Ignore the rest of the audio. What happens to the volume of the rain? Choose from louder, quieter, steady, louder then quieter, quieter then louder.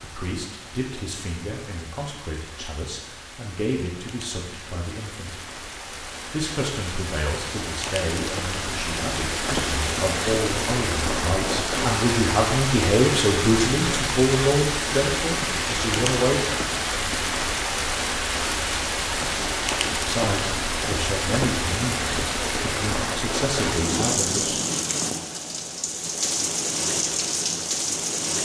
louder.